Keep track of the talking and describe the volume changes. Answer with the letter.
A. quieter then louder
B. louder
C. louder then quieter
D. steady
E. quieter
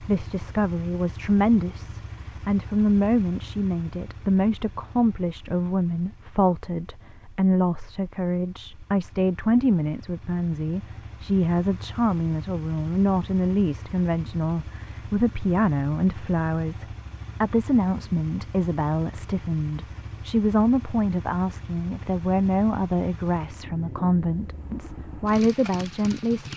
D.